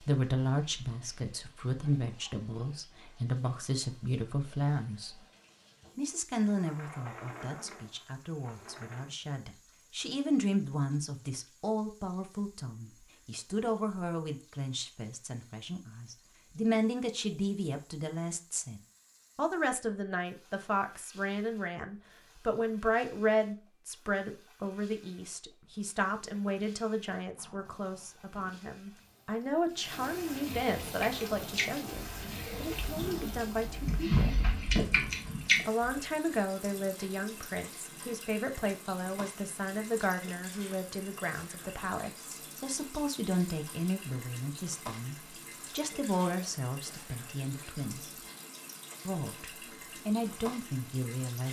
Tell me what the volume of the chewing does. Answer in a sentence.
The loudness of the chewing goes down, then up.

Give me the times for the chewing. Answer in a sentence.
You can hear the chewing from 30.8 to 36.1 s.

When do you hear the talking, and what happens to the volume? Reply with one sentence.
You can hear the talking from 0.0 to 5.2 s, getting quieter then louder; from 6.0 to 34.4 s, at a steady volume; from 35.6 to 48.1 s, at a steady volume; and briefly from 49.0 to 51.4 s.